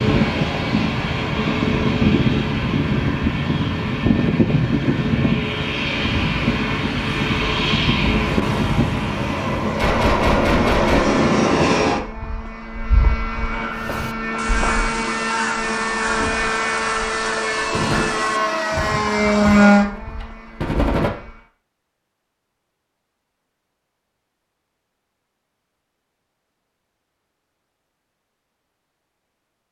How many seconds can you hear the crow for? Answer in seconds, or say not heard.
6 s.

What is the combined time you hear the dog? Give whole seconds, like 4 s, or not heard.
not heard.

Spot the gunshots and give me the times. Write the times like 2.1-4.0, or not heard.
9.8-11.2, 17.6-21.1.